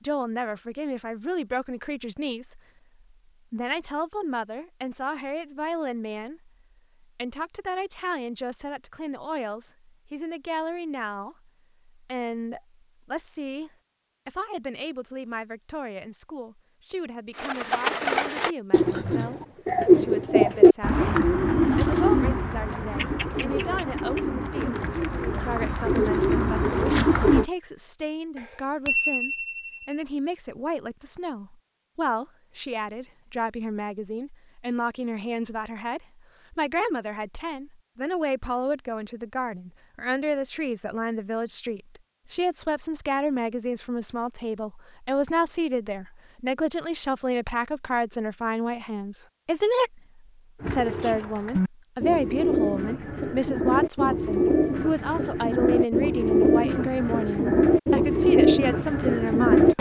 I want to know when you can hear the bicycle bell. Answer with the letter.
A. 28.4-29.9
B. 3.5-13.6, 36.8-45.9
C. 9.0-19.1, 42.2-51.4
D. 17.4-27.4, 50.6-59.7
A.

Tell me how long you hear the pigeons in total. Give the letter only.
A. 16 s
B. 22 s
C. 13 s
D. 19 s
D.